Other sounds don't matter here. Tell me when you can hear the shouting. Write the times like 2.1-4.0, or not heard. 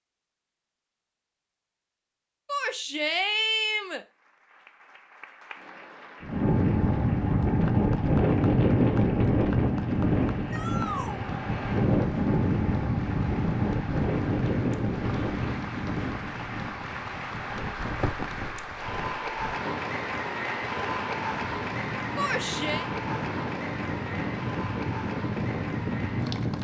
2.5-4.0, 10.5-11.2, 22.1-22.9.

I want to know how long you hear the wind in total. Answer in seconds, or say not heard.
20 s.